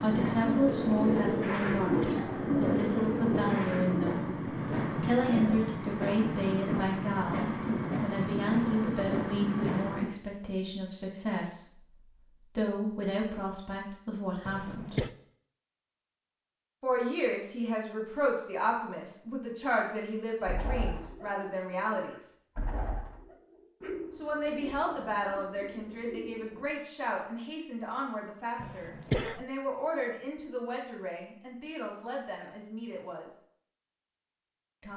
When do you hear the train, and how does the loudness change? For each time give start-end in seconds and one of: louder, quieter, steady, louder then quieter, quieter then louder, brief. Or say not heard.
0.0-10.2 steady.